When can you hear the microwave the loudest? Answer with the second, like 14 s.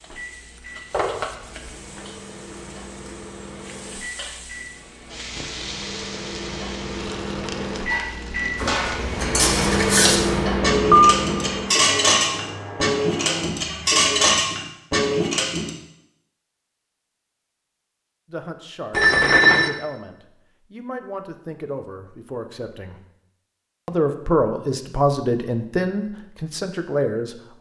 10 s.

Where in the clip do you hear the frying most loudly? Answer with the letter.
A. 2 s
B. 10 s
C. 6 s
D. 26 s
C.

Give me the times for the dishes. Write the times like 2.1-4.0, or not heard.
7.9-15.7.